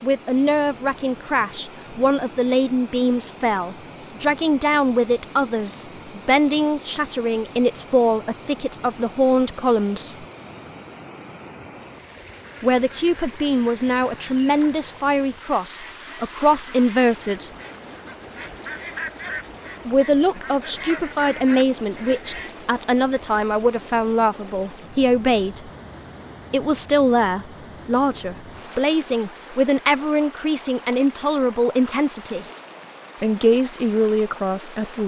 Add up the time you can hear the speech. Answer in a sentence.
You can hear the speech for 29 seconds altogether.